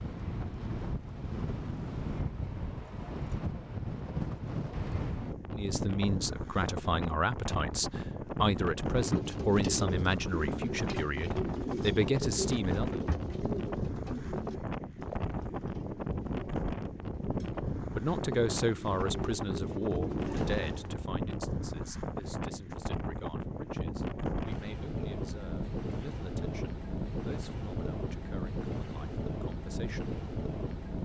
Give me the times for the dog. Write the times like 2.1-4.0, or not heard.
not heard.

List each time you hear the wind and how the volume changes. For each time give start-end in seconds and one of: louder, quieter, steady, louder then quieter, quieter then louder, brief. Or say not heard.
0.0-31.0 steady.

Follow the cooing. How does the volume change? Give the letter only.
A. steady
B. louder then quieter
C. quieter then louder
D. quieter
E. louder
C.